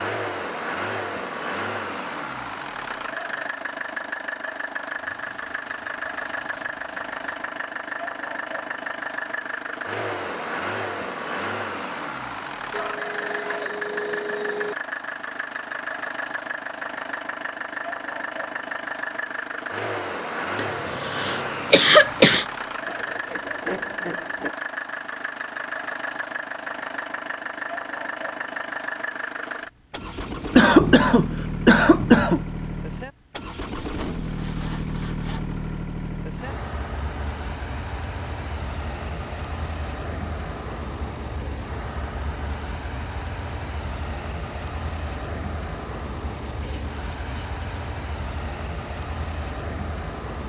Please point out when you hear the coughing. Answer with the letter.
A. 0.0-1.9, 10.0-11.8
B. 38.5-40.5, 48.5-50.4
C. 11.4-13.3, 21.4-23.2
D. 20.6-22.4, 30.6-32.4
D.